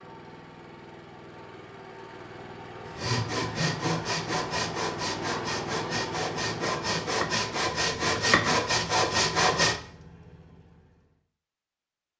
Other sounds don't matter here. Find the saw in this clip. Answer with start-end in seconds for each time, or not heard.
2.9-9.8.